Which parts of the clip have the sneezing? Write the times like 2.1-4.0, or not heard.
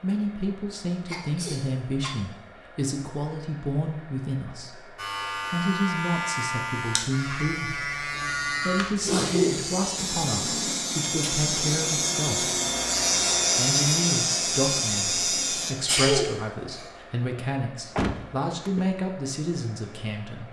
1.1-2.1, 9.1-9.6, 15.8-16.9.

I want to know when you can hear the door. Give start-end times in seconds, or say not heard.
17.9-18.9.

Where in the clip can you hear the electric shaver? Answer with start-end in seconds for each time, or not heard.
5.0-15.8.